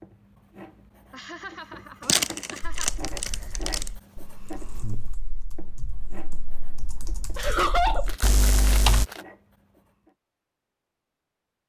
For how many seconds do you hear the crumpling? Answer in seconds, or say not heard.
3 s.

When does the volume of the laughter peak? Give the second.
8 s.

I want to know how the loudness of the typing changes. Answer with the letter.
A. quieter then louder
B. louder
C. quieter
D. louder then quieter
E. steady
B.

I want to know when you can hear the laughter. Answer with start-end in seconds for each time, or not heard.
1.1-2.9, 7.3-8.1.